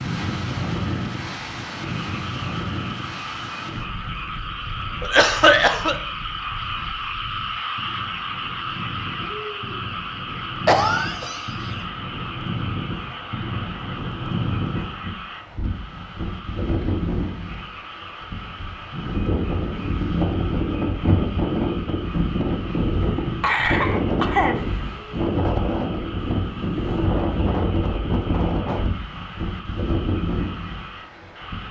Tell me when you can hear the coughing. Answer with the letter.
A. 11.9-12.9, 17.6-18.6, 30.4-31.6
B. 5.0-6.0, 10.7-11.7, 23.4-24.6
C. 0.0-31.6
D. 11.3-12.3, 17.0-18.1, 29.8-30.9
B.